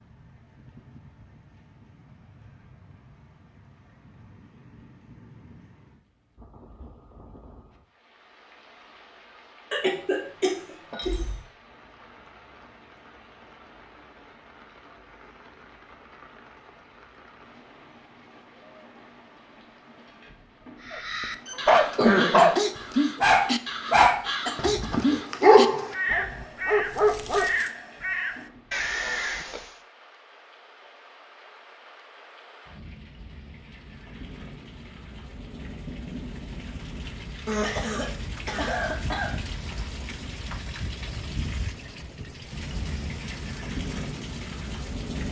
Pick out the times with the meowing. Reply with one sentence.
The meowing can't be heard in this clip.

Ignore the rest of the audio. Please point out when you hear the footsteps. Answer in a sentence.
The footsteps can't be heard in this clip.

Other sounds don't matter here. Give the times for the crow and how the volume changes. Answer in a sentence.
The crow can be heard from 20.8 to 29.8 s, at a steady volume.